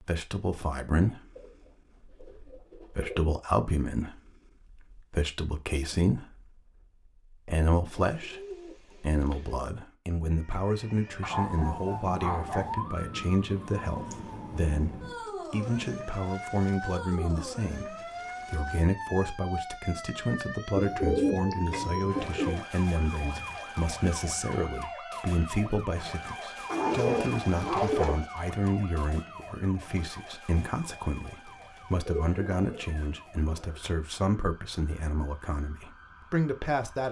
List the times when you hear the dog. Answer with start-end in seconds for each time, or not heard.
11.2-12.8, 26.6-28.2.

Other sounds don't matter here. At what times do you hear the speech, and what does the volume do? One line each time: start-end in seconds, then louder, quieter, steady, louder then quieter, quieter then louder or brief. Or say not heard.
0.0-37.0 steady.